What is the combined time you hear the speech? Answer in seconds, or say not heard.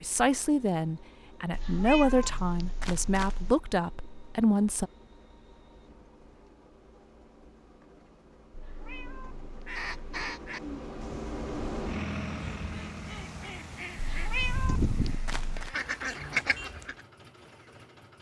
5 s.